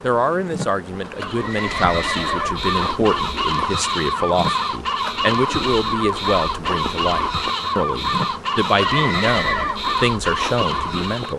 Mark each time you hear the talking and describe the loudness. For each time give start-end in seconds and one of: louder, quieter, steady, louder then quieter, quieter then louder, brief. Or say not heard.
0.0-11.3 steady.